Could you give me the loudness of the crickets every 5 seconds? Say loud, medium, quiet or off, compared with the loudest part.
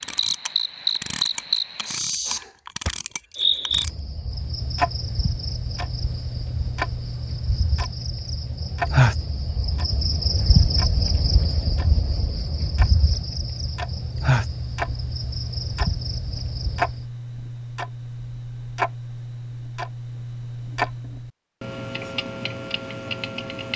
loud, loud, loud, medium, off.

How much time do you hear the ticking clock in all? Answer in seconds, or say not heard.
24 s.